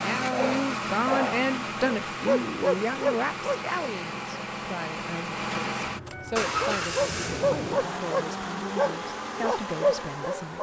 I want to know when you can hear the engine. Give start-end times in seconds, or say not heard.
0.0-10.5.